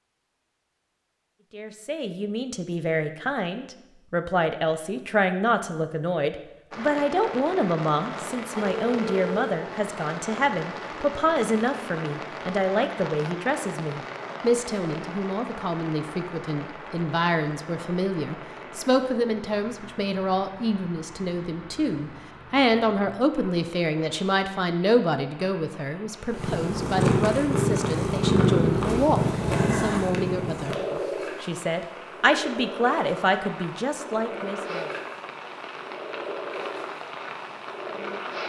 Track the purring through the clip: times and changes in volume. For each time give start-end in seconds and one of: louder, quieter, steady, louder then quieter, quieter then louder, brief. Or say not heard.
26.3-38.4 quieter.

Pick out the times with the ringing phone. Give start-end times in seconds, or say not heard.
8.6-9.6.